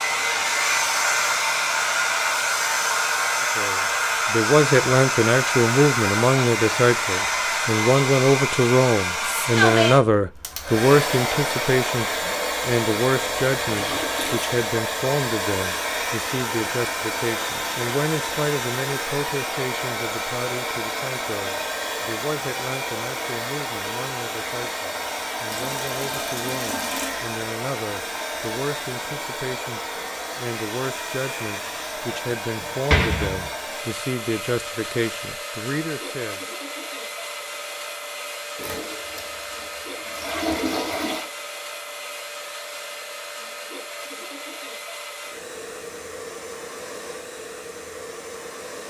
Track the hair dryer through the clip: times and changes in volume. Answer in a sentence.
The hair dryer can be heard from 0.0 to 48.8 s, getting quieter.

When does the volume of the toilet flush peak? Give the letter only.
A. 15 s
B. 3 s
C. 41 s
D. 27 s
C.